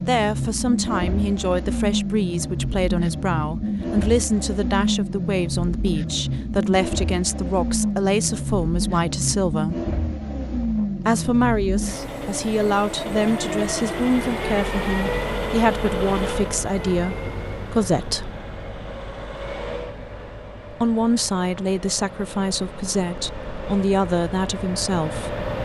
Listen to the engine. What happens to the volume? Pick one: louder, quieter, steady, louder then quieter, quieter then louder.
quieter.